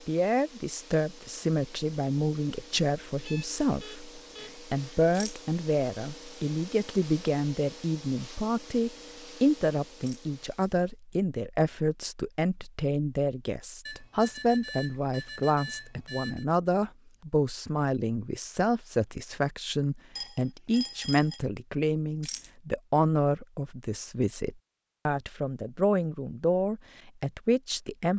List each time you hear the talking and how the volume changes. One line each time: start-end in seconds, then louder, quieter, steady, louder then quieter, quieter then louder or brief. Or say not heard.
0.1-28.1 steady.